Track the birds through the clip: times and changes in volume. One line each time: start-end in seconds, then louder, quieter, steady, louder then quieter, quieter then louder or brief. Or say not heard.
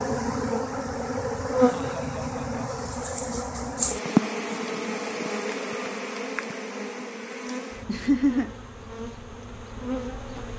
not heard.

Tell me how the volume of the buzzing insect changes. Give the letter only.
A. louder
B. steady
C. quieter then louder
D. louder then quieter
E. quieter
E.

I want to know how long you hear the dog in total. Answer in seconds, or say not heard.
not heard.